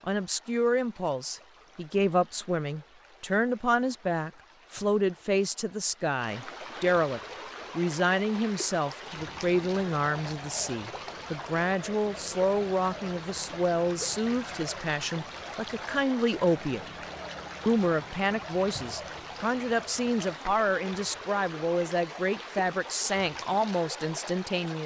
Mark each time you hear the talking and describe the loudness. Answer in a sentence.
You can hear the talking from 0.1 to 16.9 s, at a steady volume; and from 17.6 to 24.8 s, at a steady volume.